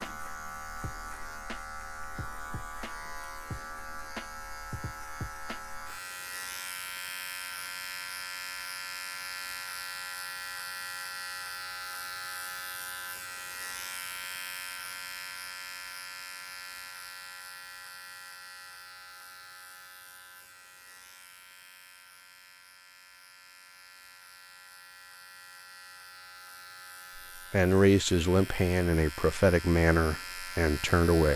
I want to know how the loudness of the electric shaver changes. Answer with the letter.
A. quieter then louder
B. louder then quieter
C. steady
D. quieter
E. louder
A.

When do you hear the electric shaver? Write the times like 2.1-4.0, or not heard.
0.0-31.3.